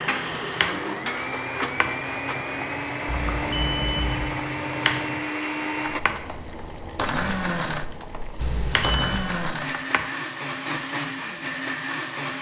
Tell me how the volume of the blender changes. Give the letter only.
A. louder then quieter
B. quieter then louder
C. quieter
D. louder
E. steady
E.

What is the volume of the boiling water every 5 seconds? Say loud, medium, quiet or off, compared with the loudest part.
loud, medium, off.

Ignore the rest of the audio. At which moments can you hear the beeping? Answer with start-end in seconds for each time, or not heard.
3.0-4.2, 8.3-9.2.